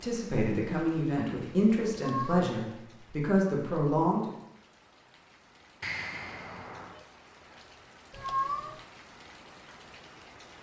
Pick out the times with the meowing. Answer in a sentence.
You can hear the meowing from 1.9 to 2.6 s and from 8.1 to 8.8 s.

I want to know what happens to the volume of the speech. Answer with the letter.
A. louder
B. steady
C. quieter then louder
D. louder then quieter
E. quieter
C.